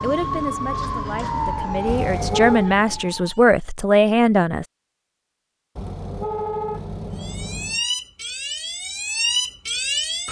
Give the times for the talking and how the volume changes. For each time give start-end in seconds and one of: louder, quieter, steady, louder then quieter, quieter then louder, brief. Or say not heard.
0.0-4.7 louder.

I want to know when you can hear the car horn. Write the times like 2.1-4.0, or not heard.
1.9-2.8, 5.8-7.8.